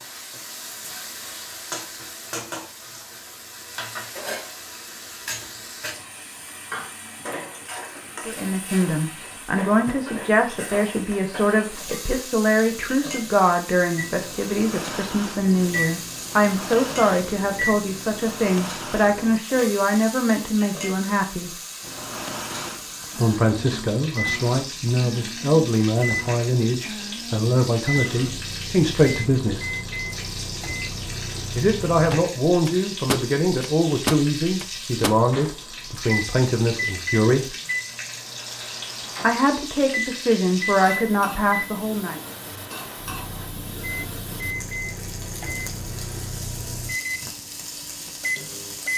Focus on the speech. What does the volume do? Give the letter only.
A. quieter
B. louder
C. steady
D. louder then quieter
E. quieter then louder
C.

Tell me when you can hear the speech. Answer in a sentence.
The speech can be heard from 8.2 to 21.6 s, from 23.1 to 29.8 s, from 31.6 to 37.5 s and from 39.2 to 42.2 s.